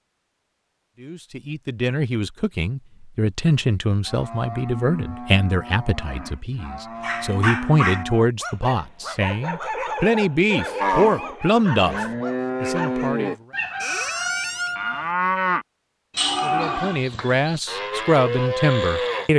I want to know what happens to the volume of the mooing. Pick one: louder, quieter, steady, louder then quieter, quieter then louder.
louder.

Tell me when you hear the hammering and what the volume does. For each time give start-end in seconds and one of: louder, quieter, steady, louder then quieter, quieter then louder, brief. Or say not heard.
not heard.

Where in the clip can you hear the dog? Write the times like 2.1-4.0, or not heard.
7.0-13.2.